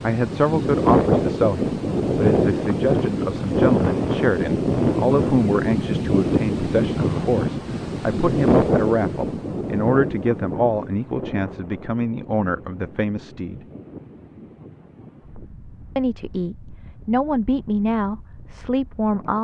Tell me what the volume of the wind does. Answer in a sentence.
The loudness of the wind goes down.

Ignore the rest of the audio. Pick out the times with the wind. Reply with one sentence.
You can hear the wind from 0.0 to 19.3 s.